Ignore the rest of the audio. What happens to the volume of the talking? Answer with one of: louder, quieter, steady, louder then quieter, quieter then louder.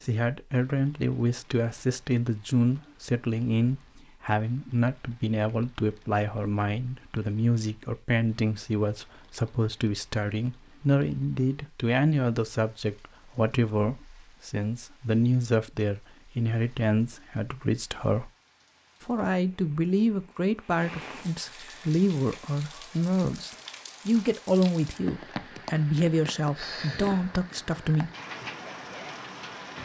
steady.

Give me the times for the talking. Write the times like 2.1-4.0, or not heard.
0.0-18.3, 19.0-28.1.